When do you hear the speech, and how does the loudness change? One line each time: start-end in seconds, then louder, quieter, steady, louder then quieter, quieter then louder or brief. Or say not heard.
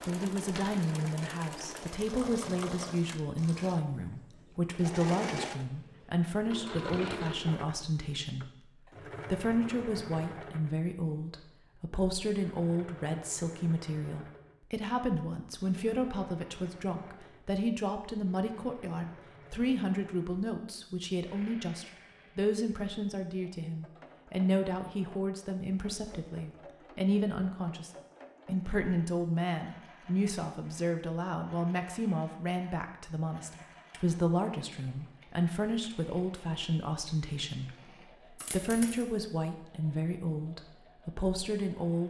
0.1-42.0 steady.